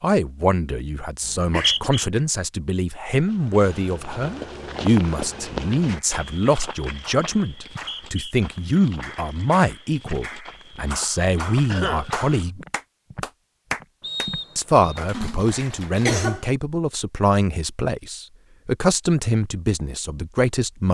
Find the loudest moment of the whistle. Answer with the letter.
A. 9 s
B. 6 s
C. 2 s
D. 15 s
C.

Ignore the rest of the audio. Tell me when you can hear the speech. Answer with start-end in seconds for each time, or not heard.
0.0-12.7, 14.6-20.8.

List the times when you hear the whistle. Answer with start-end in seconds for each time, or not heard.
1.2-2.0, 7.7-8.3, 14.0-15.0.